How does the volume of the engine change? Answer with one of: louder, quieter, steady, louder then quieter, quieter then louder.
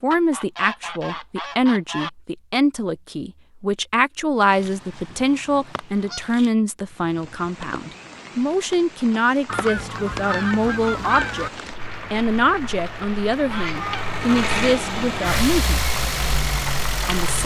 louder.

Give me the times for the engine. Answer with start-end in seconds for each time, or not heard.
11.8-17.4.